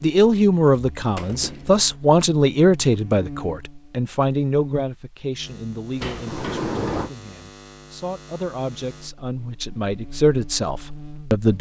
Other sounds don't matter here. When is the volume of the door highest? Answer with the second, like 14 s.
7 s.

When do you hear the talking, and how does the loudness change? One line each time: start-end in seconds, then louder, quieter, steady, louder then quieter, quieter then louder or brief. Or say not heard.
0.0-11.5 quieter then louder.